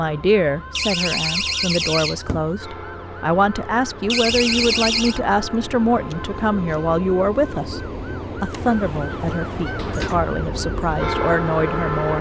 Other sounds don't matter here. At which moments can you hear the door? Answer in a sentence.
You can hear the door from 0.8 to 2.5 s, from 4.1 to 5.2 s and from 8.6 to 10.2 s.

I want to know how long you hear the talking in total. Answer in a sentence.
The talking can be heard for 12 seconds in total.